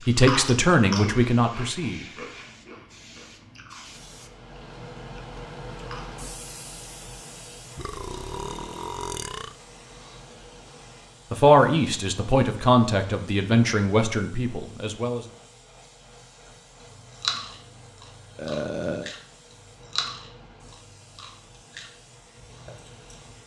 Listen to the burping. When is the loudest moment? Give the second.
19 s.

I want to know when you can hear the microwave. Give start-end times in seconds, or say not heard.
not heard.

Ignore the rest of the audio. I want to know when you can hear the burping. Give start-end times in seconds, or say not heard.
7.8-9.6, 18.4-19.1.